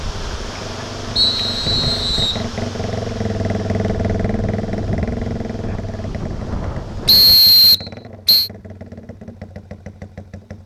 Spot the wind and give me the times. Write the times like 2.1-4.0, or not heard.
0.0-7.4.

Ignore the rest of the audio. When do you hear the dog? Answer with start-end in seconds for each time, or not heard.
not heard.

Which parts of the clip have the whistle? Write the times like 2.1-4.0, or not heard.
1.1-2.4, 7.0-8.5.